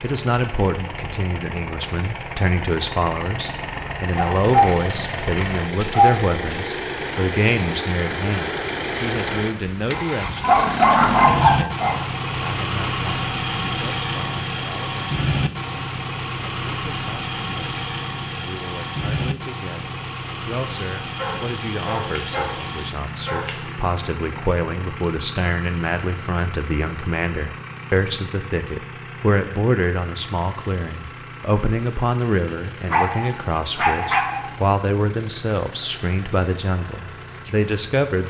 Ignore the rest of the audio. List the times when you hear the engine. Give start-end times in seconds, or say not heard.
0.0-38.2.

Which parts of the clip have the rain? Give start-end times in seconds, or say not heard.
not heard.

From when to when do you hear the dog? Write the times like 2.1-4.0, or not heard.
4.2-6.4, 10.4-12.3, 21.1-23.6, 32.9-34.5.